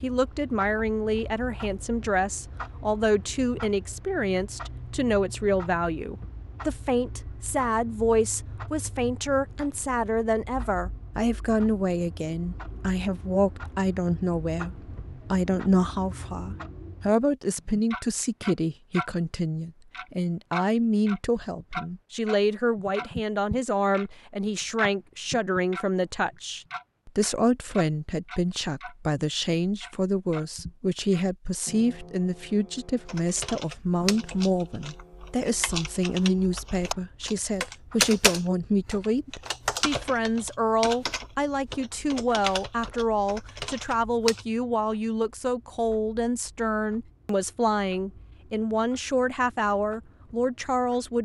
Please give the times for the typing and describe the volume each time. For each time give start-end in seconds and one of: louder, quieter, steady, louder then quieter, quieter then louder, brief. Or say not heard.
33.0-44.5 louder then quieter.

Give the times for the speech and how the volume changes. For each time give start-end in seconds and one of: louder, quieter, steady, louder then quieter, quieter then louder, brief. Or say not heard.
0.0-51.1 steady.